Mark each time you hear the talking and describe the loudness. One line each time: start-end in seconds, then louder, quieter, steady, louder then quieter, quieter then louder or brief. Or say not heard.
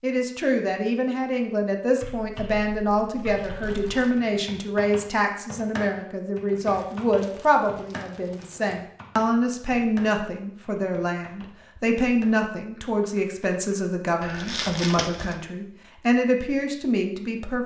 0.0-17.6 steady.